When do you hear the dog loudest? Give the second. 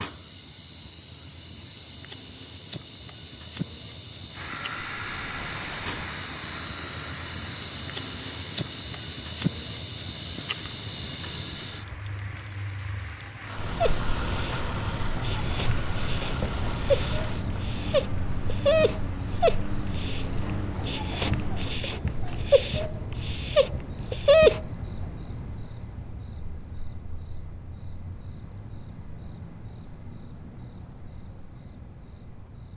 24 s.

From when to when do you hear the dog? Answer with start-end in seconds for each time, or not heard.
13.7-24.6.